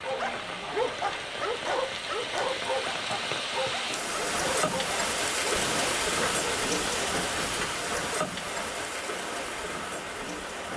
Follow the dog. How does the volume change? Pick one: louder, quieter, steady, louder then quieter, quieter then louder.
quieter.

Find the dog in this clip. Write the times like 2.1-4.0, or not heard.
0.0-8.0.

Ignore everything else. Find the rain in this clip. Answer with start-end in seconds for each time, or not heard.
0.0-10.7.